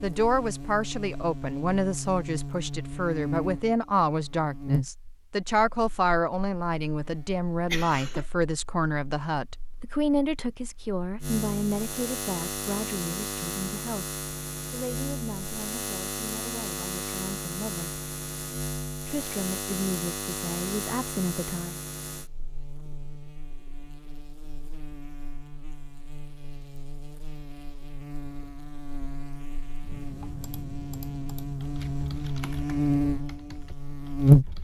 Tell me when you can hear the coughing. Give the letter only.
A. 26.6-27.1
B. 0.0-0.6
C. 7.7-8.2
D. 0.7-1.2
C.